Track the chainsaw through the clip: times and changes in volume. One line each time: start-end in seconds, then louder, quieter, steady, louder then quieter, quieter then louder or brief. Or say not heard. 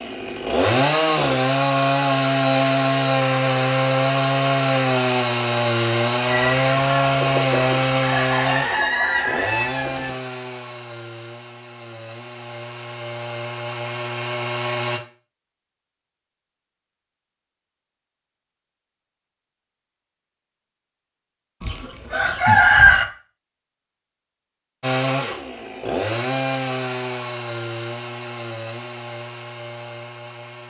0.0-15.0 quieter
24.8-30.6 quieter.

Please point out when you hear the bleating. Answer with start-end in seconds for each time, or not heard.
not heard.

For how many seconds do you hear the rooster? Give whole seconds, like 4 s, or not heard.
5 s.